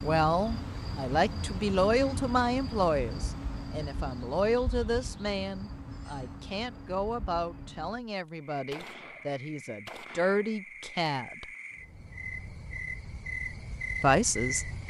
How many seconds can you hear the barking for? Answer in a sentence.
The barking can't be heard in this clip.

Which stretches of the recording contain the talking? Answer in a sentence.
The talking can be heard from 0.0 to 11.4 s and from 14.0 to 14.7 s.